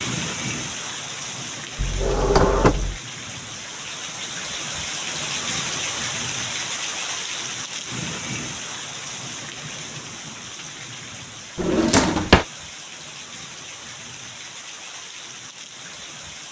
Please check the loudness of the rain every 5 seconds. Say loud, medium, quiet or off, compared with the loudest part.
loud, loud, medium, medium.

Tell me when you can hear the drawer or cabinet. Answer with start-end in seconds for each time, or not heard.
1.8-3.0, 11.6-12.4.